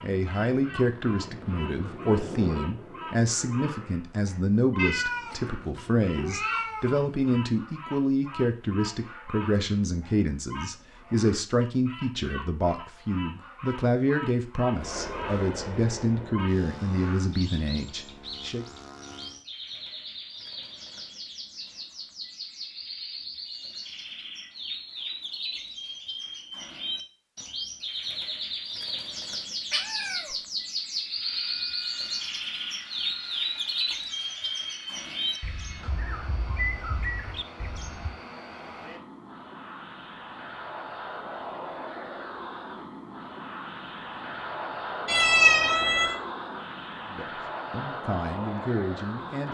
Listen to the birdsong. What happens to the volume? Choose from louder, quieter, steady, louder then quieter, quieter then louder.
louder.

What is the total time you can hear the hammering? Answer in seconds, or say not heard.
not heard.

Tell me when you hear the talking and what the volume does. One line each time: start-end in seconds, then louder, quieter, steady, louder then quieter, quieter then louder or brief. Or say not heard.
0.0-18.6 steady
47.1-49.5 brief.